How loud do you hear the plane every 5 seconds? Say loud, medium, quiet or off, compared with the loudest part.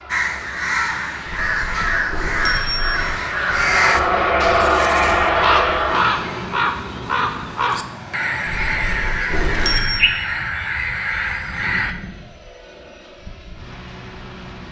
loud, loud, quiet.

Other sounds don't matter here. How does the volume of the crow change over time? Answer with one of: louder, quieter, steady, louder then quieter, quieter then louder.
steady.